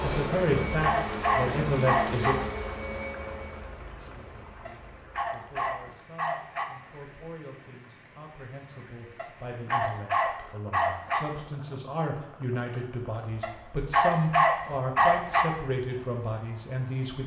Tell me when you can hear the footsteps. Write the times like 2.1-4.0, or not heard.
not heard.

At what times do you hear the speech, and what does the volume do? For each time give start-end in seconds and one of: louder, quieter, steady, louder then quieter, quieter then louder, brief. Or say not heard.
0.0-2.4 brief
4.0-17.2 louder.